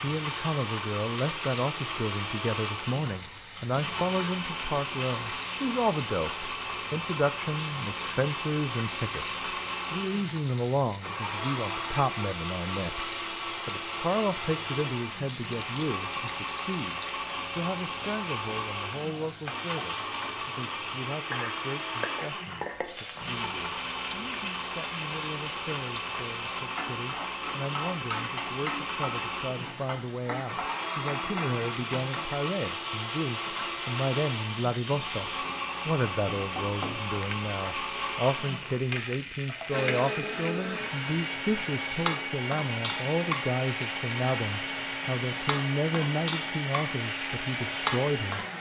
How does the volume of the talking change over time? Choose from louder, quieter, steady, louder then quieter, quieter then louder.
quieter then louder.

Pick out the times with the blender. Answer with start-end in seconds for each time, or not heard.
0.0-48.5.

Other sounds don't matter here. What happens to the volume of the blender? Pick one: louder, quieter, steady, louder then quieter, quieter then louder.
steady.